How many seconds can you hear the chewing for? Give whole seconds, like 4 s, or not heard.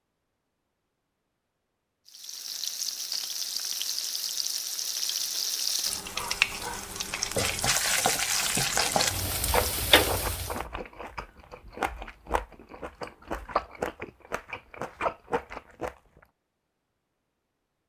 7 s.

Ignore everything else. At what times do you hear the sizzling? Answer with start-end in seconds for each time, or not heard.
2.0-10.6.